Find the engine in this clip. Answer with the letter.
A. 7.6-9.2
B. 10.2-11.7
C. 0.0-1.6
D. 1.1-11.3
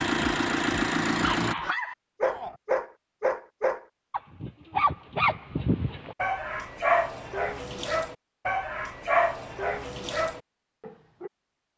C.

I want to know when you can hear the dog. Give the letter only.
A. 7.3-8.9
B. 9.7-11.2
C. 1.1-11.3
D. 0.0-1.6
C.